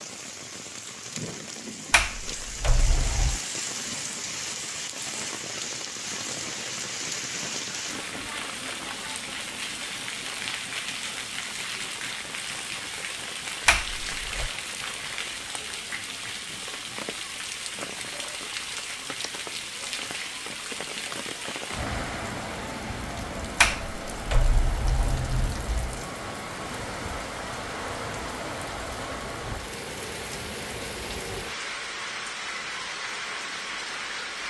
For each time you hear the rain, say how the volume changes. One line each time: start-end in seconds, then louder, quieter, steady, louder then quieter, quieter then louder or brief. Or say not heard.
0.0-34.4 steady.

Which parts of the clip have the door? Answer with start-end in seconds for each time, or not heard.
1.9-3.4, 13.7-14.5, 23.6-26.0.